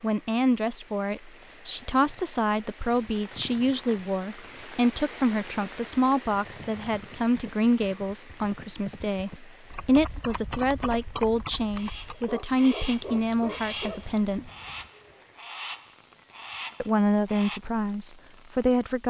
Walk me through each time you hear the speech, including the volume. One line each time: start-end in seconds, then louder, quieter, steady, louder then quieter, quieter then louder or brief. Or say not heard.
0.0-14.5 steady
16.8-19.0 brief.